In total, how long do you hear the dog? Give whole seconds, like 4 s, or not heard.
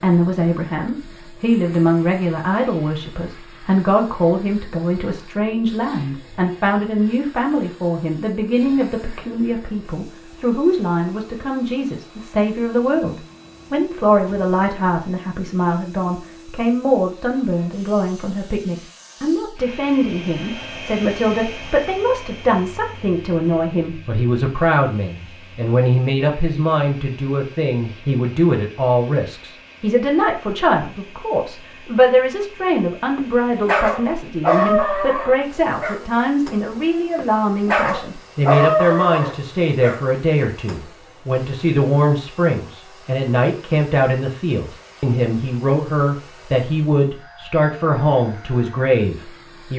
7 s.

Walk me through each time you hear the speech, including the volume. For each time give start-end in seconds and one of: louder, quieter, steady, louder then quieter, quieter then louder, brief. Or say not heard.
0.0-49.7 steady.